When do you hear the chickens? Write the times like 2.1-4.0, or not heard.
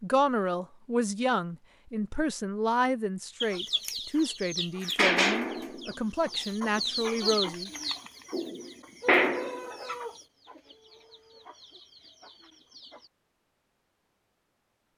3.4-13.1.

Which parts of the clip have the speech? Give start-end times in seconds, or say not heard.
0.0-7.7.